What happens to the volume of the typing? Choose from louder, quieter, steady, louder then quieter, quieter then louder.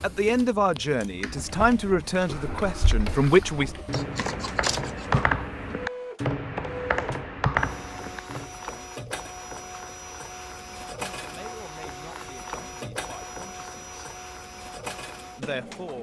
louder.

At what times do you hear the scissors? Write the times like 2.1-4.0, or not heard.
3.9-5.1.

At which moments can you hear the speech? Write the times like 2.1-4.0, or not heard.
0.0-3.7, 11.2-14.1, 15.3-15.9.